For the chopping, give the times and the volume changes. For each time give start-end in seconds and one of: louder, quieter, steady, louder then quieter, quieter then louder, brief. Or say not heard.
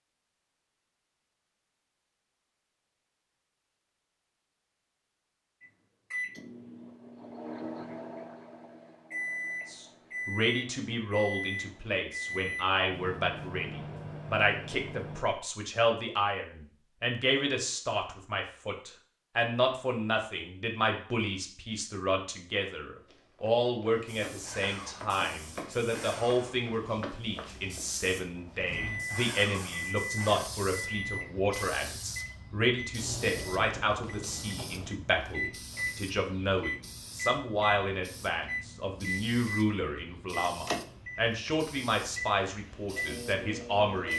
not heard.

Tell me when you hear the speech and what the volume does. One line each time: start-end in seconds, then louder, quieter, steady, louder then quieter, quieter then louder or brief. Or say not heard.
9.7-44.1 steady.